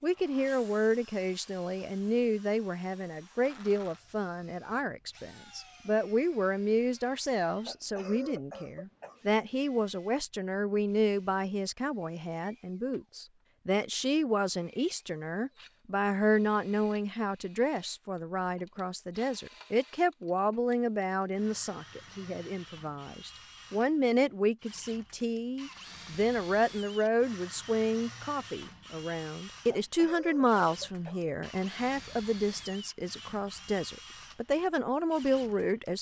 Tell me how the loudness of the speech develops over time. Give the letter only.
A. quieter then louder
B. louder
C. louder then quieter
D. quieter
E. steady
E.